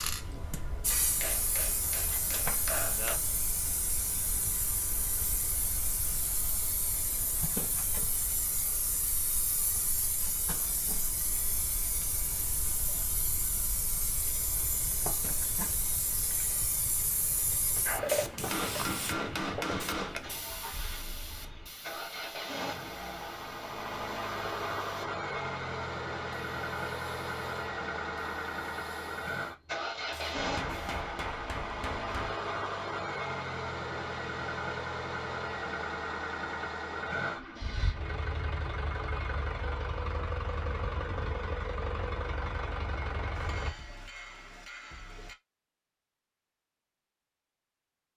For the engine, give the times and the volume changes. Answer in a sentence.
The engine can be heard from 14.3 to 43.8 s, getting louder.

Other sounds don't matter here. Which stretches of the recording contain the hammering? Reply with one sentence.
The hammering can be heard from 0.2 to 3.2 s, from 18.5 to 20.2 s, from 30.4 to 32.4 s and from 43.4 to 45.4 s.